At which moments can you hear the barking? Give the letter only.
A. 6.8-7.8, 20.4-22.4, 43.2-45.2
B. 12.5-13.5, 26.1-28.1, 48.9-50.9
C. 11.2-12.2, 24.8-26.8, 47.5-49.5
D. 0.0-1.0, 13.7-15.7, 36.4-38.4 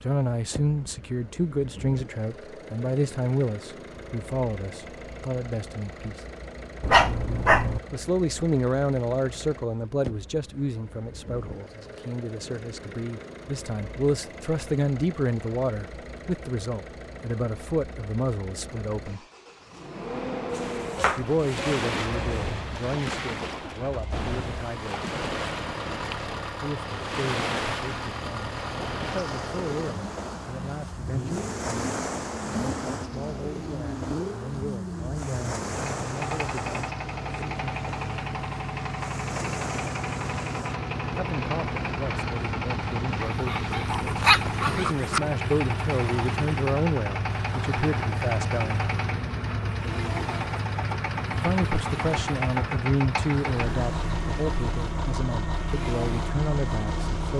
A.